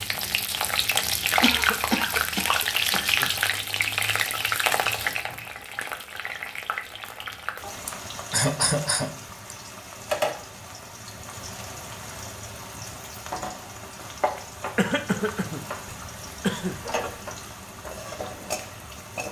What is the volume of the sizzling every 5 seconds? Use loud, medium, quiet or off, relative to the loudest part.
loud, medium, medium, medium.